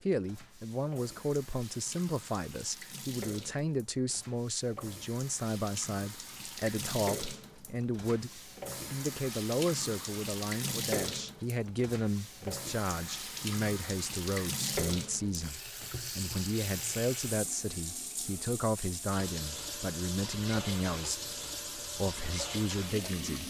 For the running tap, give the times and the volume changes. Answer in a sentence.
The running tap can be heard from 0.1 to 23.4 s, getting louder.